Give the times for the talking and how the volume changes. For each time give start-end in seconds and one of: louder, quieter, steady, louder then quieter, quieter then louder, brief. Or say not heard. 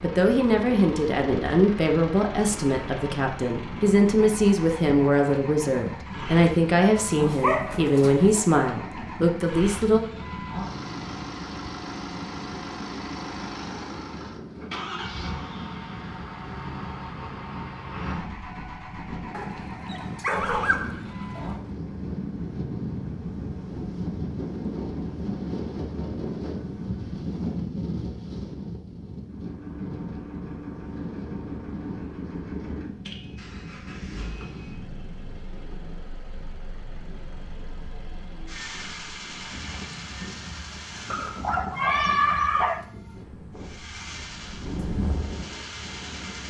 0.0-10.0 steady.